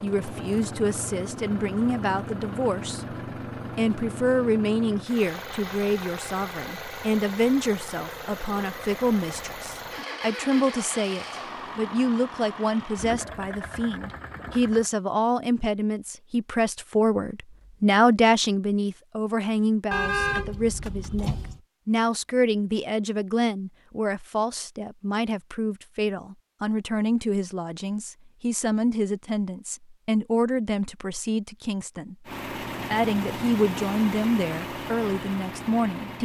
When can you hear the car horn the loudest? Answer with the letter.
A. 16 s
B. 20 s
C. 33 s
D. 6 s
B.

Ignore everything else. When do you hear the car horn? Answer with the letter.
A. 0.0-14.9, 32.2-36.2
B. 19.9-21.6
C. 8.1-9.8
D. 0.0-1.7
B.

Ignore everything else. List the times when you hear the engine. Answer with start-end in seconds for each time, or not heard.
0.0-14.9, 32.2-36.2.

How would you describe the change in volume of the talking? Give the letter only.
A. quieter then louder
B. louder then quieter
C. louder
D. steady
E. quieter
D.